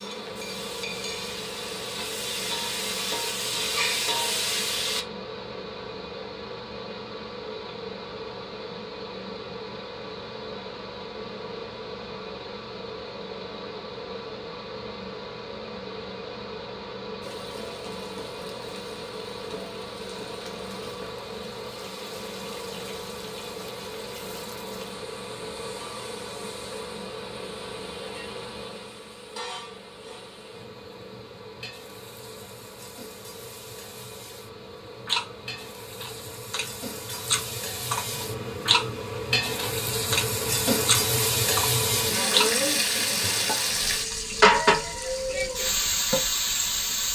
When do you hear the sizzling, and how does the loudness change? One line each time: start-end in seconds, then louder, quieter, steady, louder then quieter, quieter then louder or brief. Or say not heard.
0.0-5.0 louder
17.2-47.0 louder.